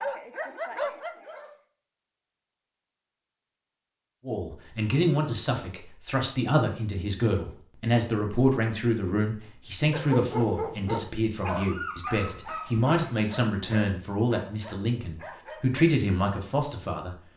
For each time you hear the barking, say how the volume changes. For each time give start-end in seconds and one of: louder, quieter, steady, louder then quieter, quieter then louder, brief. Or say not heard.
0.0-1.5 brief
9.9-15.8 quieter.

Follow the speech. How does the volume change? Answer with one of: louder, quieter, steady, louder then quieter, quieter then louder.
steady.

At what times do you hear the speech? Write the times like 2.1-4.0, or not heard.
4.2-17.2.